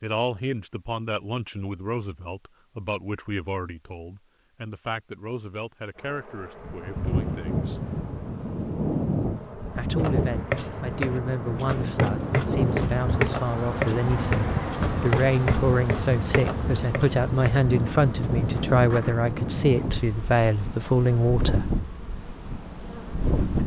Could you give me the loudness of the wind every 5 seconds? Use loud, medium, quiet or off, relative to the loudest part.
off, loud, loud, loud, loud.